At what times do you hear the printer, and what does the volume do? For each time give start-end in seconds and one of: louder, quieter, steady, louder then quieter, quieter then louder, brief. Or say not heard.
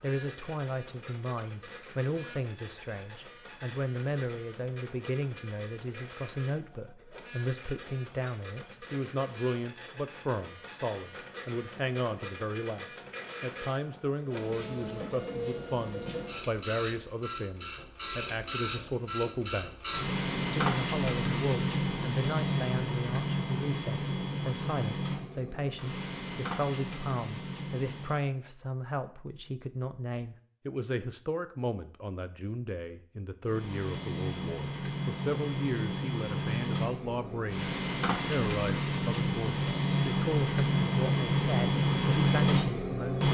0.0-28.2 louder
33.4-43.2 louder.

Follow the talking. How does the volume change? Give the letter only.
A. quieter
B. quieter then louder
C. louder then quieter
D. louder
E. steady
E.